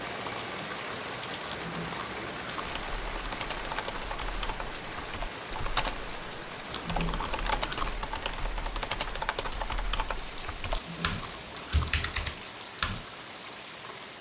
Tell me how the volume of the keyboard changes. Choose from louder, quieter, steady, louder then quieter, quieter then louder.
louder.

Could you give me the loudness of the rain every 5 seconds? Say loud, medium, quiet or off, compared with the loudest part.
loud, loud, medium.